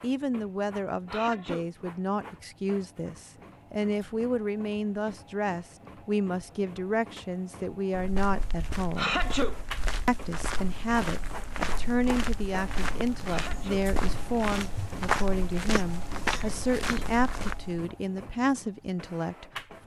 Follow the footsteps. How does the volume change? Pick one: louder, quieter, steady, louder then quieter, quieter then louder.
louder.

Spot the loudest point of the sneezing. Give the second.
9 s.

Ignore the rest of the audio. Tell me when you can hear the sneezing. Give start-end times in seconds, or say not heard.
1.1-1.7, 8.9-9.6, 13.2-13.9.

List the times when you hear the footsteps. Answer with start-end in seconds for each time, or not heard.
7.9-17.8.